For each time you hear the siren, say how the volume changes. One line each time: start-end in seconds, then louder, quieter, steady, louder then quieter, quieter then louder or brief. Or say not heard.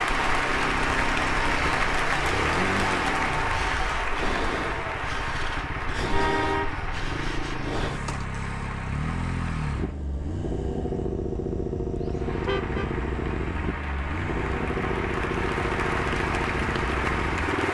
not heard.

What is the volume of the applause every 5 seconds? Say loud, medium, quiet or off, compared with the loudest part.
loud, medium, medium, loud.